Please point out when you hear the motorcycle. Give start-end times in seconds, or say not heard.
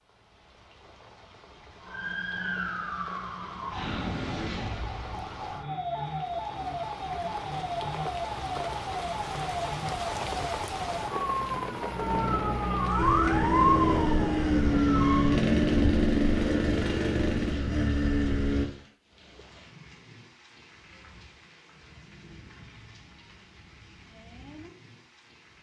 12.9-18.7.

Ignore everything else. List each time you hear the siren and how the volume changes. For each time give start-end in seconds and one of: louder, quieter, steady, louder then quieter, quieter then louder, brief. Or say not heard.
1.8-15.3 louder.